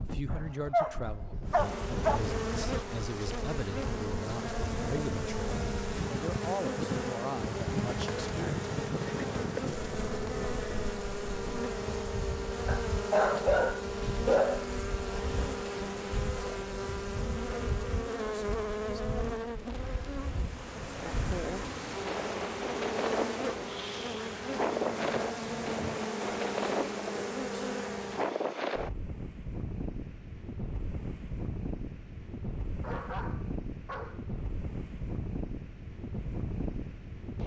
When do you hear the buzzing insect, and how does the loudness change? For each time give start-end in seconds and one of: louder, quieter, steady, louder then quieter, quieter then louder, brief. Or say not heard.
1.4-28.4 steady.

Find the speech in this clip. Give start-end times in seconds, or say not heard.
0.0-8.4.